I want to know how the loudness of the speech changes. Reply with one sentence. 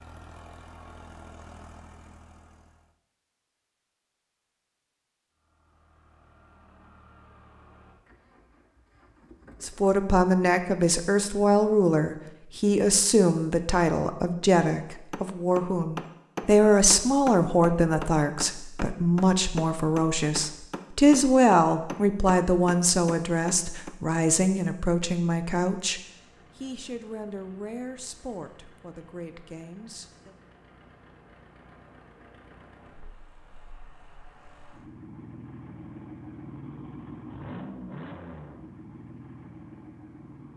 The loudness of the speech goes down.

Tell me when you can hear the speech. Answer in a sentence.
The speech can be heard from 9.6 to 30.4 s.